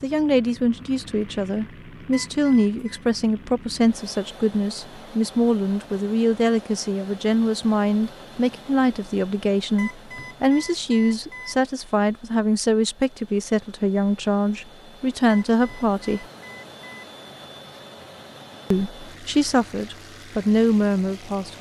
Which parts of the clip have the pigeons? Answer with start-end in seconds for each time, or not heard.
not heard.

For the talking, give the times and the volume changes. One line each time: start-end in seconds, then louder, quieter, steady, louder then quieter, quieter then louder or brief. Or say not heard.
0.0-16.2 steady
18.7-21.5 brief.